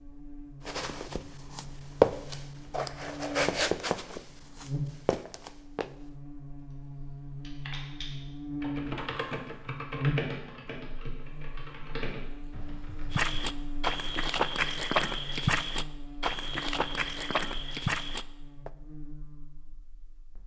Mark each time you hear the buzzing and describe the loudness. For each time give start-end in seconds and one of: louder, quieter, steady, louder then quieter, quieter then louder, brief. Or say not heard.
0.0-20.4 louder then quieter.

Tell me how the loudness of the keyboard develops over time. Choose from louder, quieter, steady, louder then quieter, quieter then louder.
louder then quieter.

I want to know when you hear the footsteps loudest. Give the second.
2 s.